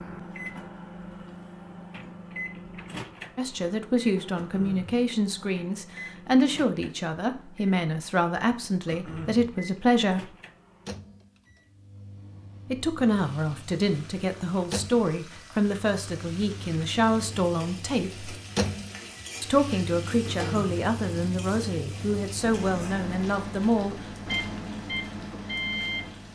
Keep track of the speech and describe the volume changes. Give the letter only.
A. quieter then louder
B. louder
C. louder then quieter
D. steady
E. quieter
D.